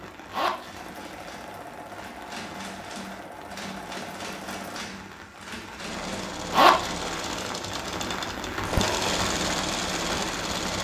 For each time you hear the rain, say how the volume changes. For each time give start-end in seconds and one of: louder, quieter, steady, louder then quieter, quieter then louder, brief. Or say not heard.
0.0-10.7 louder.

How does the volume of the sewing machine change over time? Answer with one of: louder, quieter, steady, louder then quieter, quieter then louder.
louder.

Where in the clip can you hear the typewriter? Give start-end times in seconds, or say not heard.
0.7-6.3.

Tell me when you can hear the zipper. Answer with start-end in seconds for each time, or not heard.
0.3-1.2, 6.5-7.5.